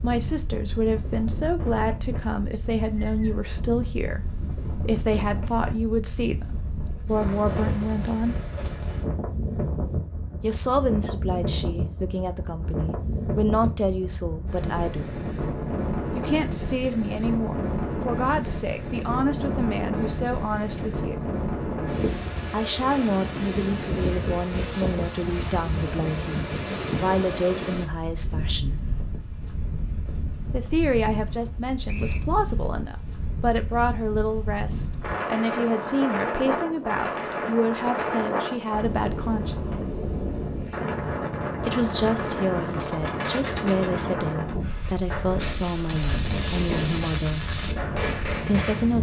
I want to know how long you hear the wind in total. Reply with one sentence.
The wind can be heard for 49 seconds in total.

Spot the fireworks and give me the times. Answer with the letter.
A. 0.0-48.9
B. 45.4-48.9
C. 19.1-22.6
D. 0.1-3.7
B.